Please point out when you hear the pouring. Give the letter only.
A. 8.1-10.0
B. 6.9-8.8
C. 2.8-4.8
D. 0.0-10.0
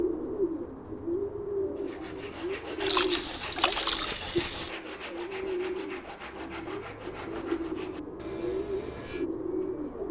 C.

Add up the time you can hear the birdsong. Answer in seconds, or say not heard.
10 s.